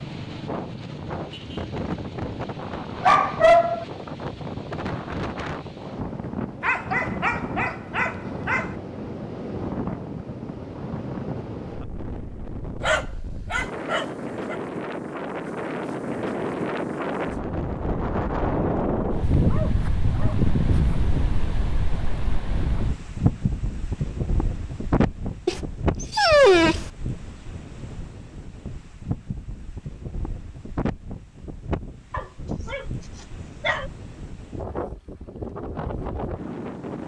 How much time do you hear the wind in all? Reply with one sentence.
You can hear the wind for 37 seconds altogether.